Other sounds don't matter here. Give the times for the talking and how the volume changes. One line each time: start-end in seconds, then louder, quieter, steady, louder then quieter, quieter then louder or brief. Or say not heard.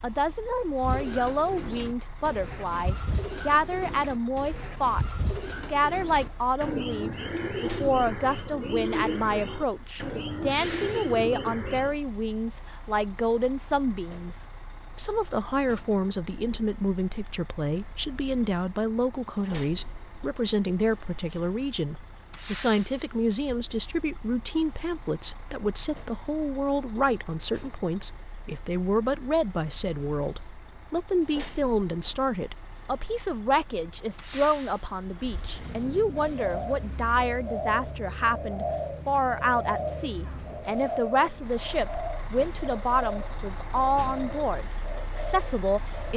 0.0-46.1 steady.